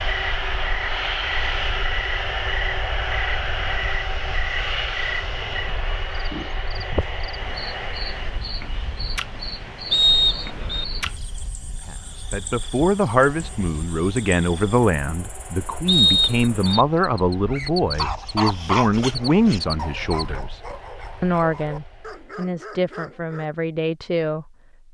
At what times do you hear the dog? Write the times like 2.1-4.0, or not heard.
17.4-23.5.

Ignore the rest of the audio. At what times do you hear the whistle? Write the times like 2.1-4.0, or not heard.
9.9-10.8, 15.8-16.9.